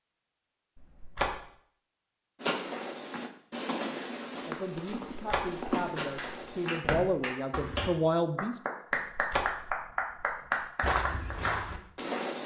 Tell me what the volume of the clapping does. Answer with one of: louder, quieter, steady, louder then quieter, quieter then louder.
louder.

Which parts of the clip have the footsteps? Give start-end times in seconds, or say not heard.
2.4-7.9, 10.8-12.4.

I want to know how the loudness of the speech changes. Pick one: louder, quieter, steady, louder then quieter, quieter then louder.
louder.